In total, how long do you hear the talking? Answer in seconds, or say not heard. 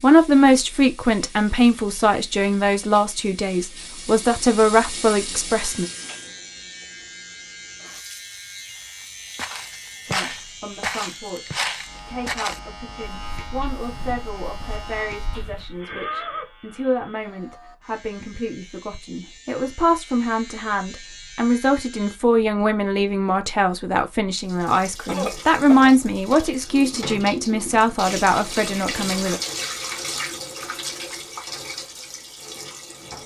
25 s.